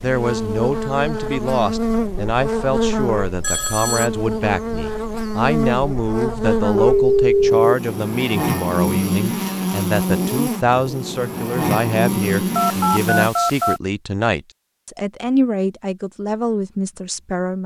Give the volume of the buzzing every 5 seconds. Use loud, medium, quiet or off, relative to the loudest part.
loud, loud, loud, off.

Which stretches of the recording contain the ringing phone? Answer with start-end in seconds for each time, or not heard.
3.4-4.1, 6.7-7.8, 12.6-13.8.